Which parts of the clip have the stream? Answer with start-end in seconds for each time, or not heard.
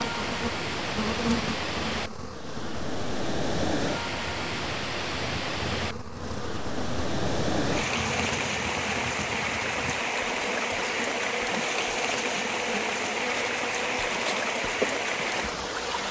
0.0-16.0.